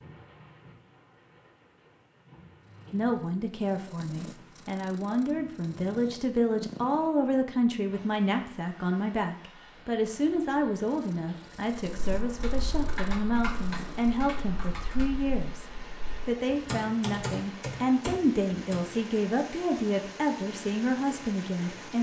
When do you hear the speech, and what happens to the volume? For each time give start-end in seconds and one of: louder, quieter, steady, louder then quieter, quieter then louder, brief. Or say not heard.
2.9-21.9 steady.